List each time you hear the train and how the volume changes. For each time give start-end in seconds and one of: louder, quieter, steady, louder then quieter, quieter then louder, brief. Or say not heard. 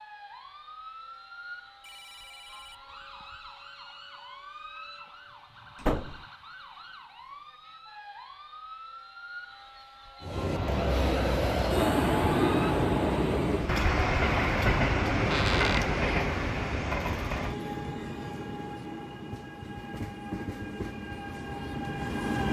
10.2-22.4 quieter.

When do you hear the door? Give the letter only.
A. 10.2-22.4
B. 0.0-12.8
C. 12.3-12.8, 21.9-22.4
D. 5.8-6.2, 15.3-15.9
D.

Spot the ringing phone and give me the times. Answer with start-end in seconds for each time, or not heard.
1.8-3.2.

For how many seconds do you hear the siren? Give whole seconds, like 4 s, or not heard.
13 s.